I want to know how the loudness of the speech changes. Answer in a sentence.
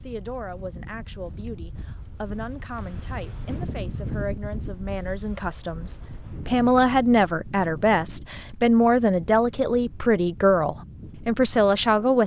The volume of the speech goes up.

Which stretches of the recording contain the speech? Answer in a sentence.
You can hear the speech from 0.0 to 12.2 s.